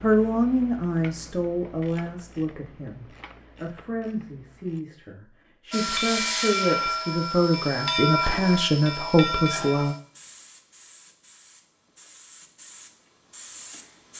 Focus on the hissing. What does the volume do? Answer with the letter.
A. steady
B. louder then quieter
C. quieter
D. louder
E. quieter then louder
E.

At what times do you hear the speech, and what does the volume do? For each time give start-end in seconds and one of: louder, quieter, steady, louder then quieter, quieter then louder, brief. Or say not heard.
0.0-9.9 quieter then louder.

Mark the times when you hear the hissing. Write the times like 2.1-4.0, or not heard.
5.7-14.1.